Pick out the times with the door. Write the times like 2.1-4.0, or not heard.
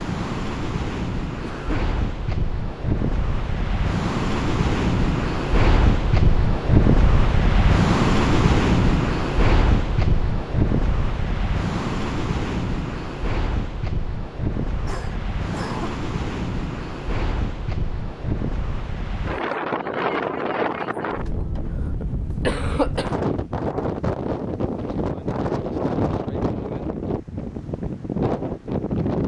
not heard.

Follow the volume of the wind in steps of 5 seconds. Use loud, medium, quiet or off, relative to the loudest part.
medium, loud, medium, medium, medium, medium.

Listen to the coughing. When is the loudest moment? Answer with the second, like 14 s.
23 s.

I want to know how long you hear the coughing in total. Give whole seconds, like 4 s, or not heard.
3 s.